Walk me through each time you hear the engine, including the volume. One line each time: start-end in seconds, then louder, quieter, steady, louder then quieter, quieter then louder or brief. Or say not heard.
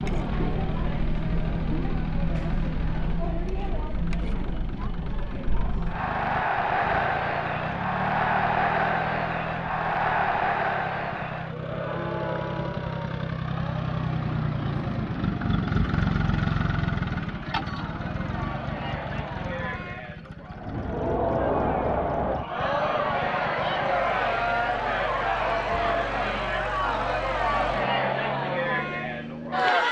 0.0-29.8 louder then quieter.